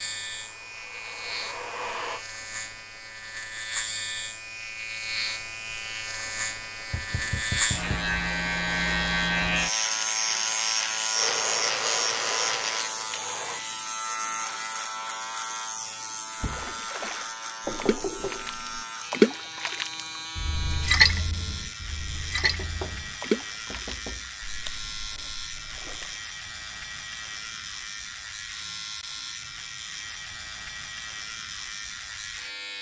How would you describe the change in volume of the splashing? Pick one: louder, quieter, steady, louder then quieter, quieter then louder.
louder then quieter.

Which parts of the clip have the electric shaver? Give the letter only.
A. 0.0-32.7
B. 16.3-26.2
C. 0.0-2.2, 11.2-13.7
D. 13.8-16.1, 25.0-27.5
A.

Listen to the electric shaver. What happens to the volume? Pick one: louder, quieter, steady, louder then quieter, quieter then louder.
louder then quieter.